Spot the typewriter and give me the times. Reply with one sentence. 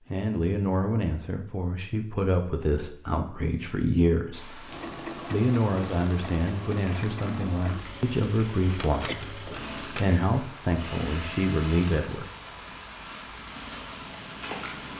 The typewriter can be heard from 8.7 to 10.2 s.